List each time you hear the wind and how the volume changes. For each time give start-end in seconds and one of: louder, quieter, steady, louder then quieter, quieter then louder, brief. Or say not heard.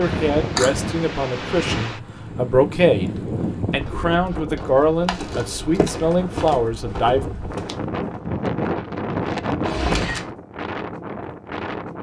0.0-11.9 quieter then louder.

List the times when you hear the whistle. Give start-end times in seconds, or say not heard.
not heard.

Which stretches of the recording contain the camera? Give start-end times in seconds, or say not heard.
0.3-0.8, 4.5-6.0, 9.6-10.3.